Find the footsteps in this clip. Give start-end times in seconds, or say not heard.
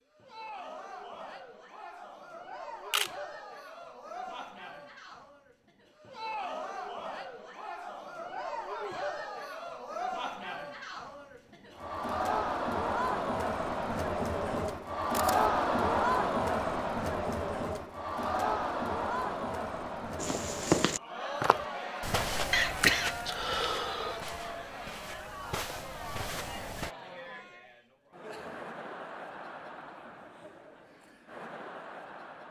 20.1-26.9.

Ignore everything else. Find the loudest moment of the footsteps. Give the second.
21 s.